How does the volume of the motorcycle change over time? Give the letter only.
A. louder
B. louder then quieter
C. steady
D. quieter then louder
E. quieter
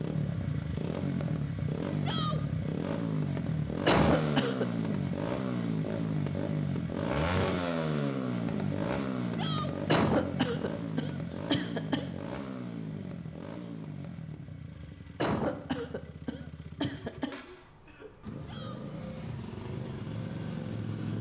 E.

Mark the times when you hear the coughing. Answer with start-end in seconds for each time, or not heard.
3.9-4.7, 9.8-12.1, 15.2-17.4.